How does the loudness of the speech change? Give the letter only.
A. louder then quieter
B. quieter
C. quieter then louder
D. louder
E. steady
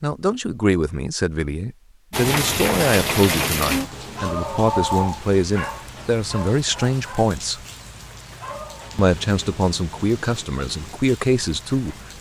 E.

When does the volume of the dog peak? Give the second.
5 s.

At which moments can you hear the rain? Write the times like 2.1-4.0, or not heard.
2.1-12.1.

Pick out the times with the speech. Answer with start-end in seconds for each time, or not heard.
0.0-7.6, 8.9-11.9.